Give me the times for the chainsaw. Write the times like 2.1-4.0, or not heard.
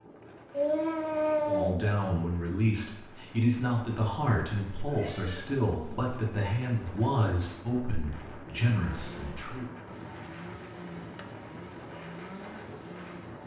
8.8-13.4.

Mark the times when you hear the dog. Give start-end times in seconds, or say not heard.
not heard.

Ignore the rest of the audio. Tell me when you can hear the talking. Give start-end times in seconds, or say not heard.
1.4-9.7.